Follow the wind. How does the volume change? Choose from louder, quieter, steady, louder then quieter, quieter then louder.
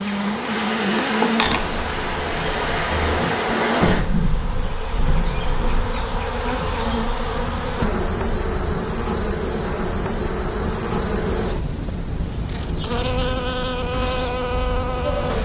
quieter.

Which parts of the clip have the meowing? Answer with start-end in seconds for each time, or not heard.
1.4-3.2.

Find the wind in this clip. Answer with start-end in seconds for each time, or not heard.
0.0-15.4.